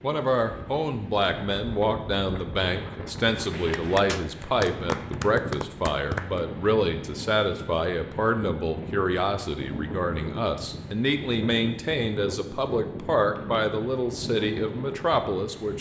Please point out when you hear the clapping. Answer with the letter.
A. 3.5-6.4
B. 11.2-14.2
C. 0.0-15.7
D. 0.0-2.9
A.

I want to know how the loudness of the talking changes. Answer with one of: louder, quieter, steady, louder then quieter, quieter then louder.
steady.